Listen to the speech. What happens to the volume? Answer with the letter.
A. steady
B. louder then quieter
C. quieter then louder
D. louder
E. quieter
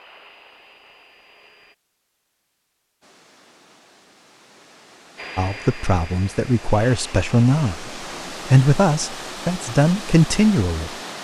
D.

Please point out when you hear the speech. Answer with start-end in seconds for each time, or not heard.
5.3-10.9.